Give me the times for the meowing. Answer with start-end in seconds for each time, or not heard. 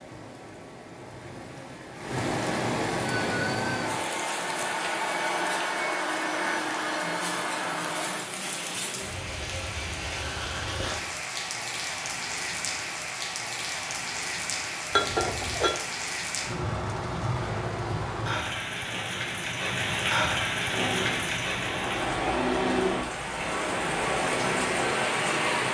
not heard.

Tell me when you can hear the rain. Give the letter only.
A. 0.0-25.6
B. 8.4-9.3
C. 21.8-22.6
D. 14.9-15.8
A.